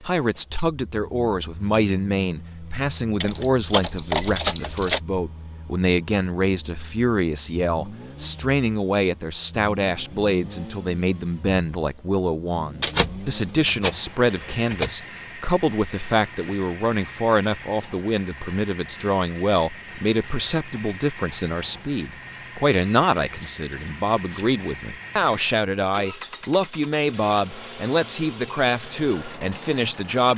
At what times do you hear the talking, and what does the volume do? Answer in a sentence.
The talking can be heard from 0.0 to 30.3 s, at a steady volume.